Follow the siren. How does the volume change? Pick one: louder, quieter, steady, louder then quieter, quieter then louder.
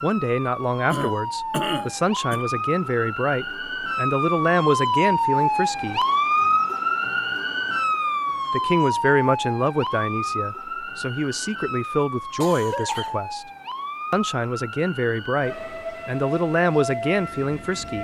louder then quieter.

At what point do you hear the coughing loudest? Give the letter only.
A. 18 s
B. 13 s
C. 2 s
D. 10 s
C.